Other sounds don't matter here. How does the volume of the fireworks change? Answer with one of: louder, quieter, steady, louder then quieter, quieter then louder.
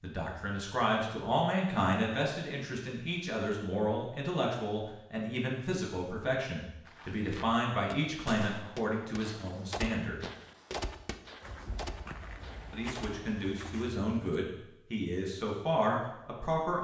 louder then quieter.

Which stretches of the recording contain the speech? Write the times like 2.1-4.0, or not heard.
0.0-10.2, 12.7-16.7.